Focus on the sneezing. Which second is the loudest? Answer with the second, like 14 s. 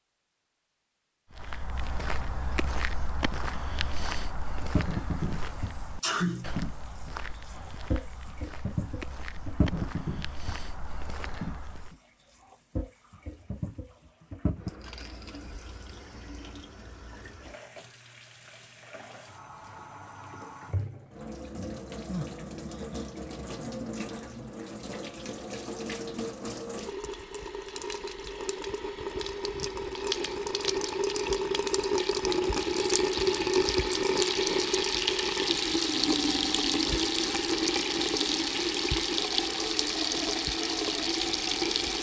6 s.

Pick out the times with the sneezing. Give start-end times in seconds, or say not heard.
6.0-6.6, 21.6-23.1.